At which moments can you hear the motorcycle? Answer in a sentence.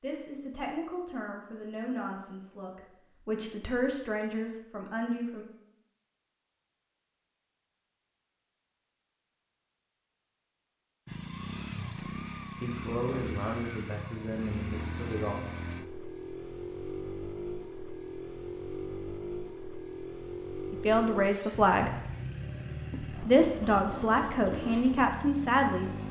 You can hear the motorcycle from 11.1 to 26.0 s.